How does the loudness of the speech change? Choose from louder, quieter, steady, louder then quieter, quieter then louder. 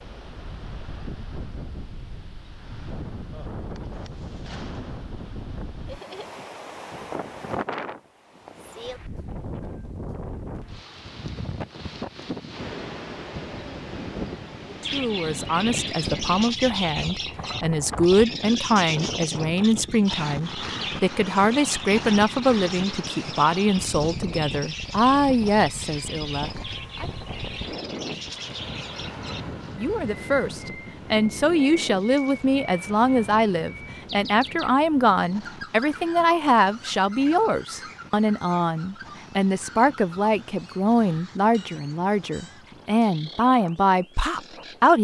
steady.